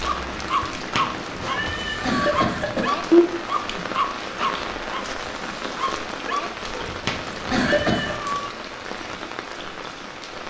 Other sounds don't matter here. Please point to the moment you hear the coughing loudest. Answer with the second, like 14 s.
3 s.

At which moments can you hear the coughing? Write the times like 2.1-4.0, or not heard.
1.4-3.2, 6.8-8.2.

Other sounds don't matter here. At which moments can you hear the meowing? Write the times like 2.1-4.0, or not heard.
0.9-2.4, 7.0-8.5.